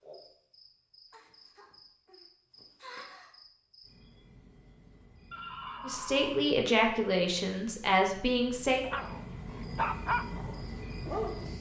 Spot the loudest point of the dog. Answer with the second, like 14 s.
10 s.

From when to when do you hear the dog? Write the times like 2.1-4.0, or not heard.
8.8-11.5.